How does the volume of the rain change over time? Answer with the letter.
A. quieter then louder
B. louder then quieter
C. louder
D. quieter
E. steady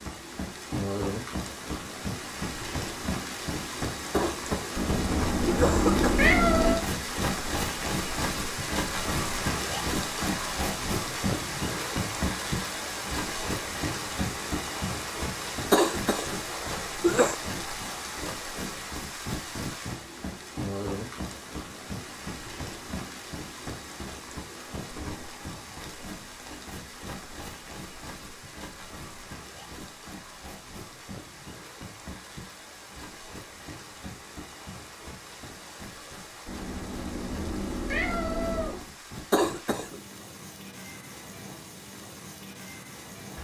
D.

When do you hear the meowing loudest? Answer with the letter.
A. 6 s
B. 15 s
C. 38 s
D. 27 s
A.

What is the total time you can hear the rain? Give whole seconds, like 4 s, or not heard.
43 s.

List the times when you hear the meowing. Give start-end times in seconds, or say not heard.
4.8-6.8, 36.5-38.8.